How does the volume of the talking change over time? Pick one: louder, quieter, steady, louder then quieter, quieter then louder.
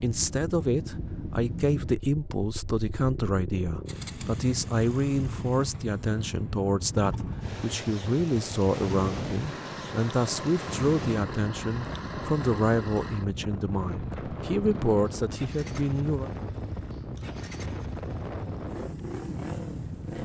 steady.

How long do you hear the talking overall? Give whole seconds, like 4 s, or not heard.
16 s.